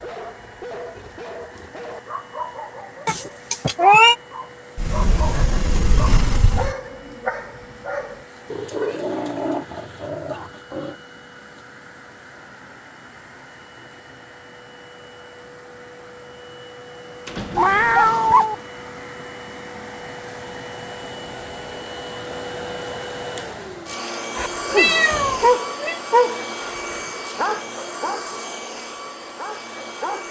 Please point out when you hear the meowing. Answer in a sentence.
You can hear the meowing from 3.0 to 4.2 s, from 17.6 to 18.6 s and from 24.7 to 26.0 s.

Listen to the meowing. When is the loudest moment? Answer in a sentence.
The loudest moment of the meowing is at 4 seconds.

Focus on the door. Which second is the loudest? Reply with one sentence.
The loudest moment of the door is at 6 seconds.